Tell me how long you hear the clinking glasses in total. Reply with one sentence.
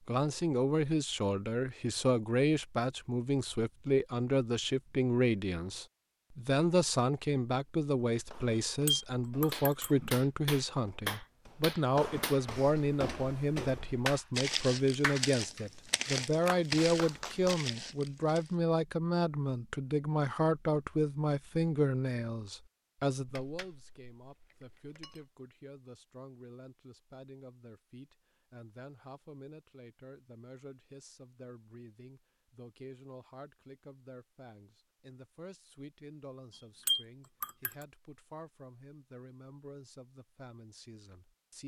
You can hear the clinking glasses for 5 seconds altogether.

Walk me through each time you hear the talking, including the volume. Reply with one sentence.
The talking can be heard from 0.1 to 41.6 s, getting quieter.